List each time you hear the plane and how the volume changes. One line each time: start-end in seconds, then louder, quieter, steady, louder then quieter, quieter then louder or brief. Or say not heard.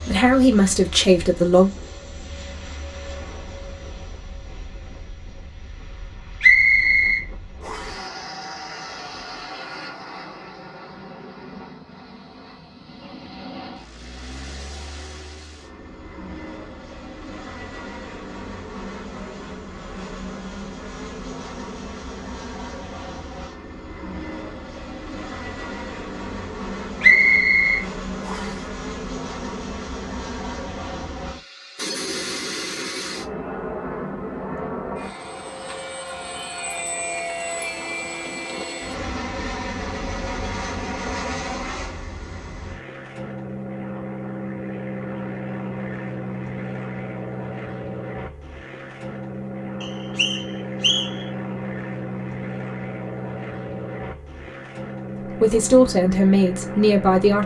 0.0-57.4 louder.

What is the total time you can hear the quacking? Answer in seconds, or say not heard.
not heard.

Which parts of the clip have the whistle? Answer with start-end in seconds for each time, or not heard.
6.4-8.0, 27.0-28.6, 49.8-51.2.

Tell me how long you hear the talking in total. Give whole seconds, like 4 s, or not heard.
4 s.